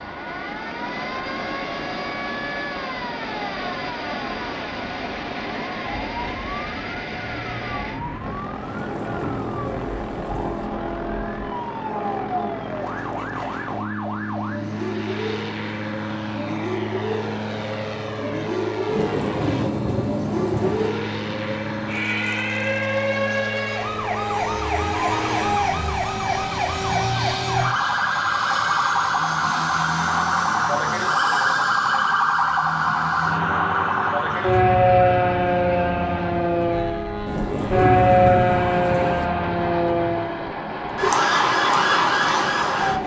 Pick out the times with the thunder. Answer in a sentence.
The thunder can be heard from 8.7 to 10.7 s, from 18.9 to 20.9 s and from 37.2 to 39.2 s.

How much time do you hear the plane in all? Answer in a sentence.
You can hear the plane for 43 seconds altogether.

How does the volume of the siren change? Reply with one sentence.
The volume of the siren goes up.